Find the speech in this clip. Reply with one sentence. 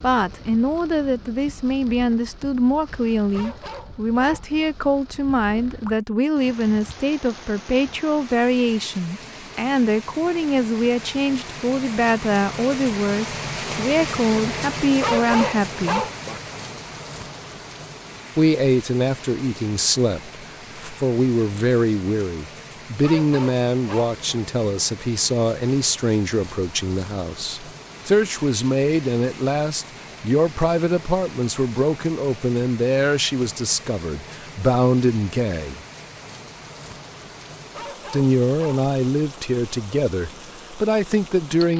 You can hear the speech from 0.0 to 16.1 s, from 18.4 to 35.8 s and from 38.1 to 41.7 s.